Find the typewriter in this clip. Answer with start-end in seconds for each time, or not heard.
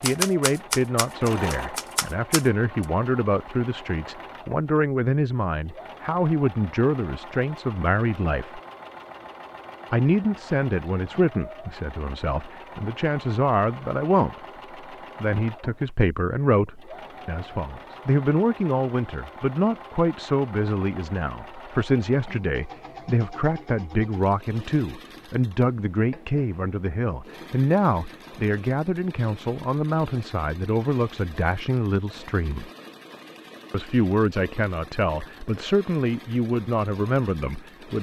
0.0-2.9.